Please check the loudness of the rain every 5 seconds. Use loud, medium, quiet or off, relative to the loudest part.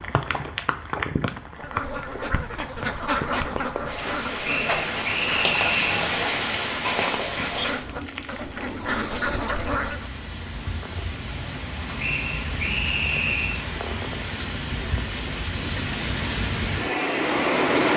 medium, loud, medium, loud.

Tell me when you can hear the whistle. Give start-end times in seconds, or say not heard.
4.4-6.0, 11.9-13.7.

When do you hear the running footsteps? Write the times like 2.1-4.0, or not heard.
not heard.